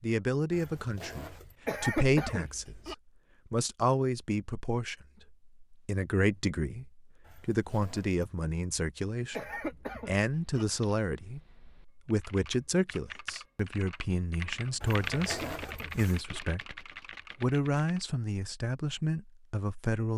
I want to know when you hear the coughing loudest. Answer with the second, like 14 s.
2 s.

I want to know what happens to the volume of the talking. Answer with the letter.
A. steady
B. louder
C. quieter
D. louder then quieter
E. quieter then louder
A.